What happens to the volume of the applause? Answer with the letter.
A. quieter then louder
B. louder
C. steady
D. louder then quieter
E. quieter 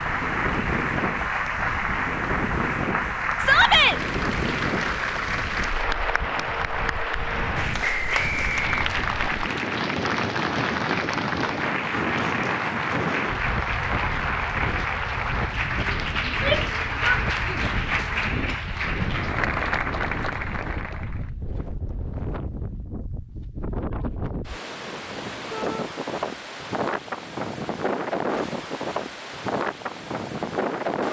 C.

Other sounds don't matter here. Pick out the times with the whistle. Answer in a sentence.
You can hear the whistle from 7.8 to 9.3 s.